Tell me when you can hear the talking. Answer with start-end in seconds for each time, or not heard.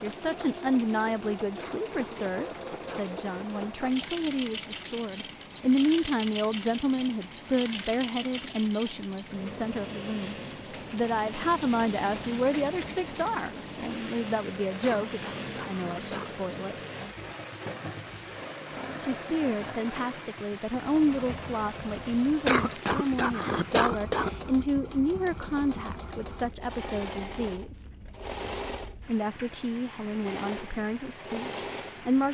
0.0-16.8, 19.0-27.9, 29.1-32.2.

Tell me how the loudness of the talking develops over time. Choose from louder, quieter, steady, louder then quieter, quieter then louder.
steady.